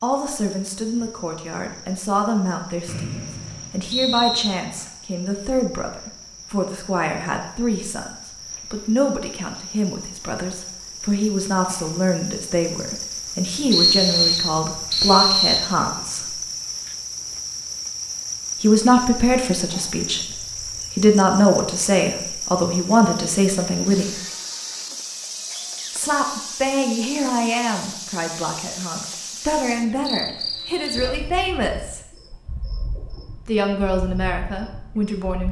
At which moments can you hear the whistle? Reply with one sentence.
The whistle can be heard from 2.9 to 4.5 s, from 13.7 to 15.7 s and from 30.1 to 31.1 s.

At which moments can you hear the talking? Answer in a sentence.
The talking can be heard from 0.0 to 16.4 s, from 18.6 to 20.2 s, from 20.9 to 24.1 s, from 25.9 to 32.0 s and from 33.5 to 35.4 s.